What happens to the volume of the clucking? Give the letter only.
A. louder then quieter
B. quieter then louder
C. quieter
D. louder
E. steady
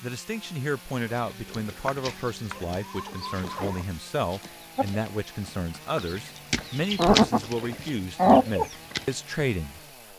D.